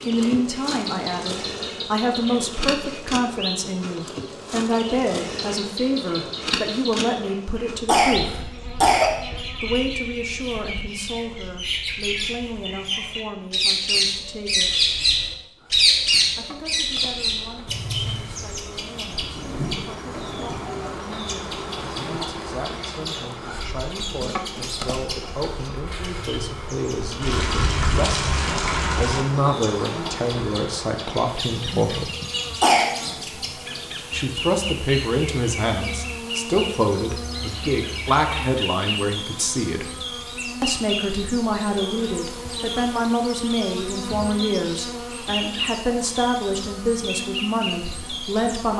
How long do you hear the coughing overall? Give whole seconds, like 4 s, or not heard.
2 s.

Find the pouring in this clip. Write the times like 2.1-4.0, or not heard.
27.2-29.2.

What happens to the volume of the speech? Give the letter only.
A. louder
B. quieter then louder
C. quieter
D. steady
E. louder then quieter
B.